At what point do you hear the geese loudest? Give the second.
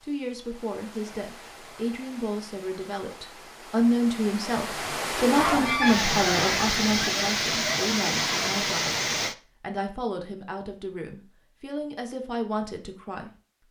6 s.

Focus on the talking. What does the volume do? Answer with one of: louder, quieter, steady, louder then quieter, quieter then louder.
louder then quieter.